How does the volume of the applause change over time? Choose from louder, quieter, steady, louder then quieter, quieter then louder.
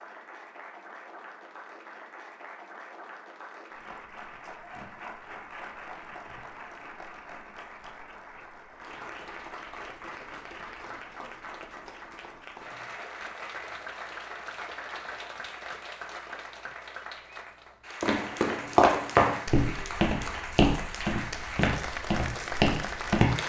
louder.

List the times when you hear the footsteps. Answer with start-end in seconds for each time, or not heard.
18.0-23.4.